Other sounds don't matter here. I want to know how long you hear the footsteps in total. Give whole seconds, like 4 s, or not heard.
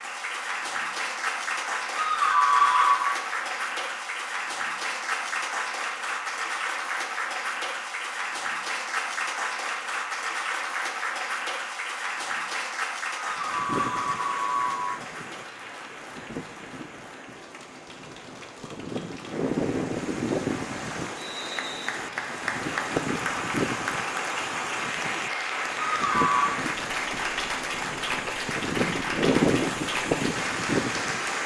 not heard.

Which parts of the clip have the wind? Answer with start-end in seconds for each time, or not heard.
13.3-31.4.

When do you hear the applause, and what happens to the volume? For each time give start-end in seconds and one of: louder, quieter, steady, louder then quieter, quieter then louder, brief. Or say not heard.
0.0-31.4 quieter then louder.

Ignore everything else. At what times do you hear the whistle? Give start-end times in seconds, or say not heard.
21.1-21.9.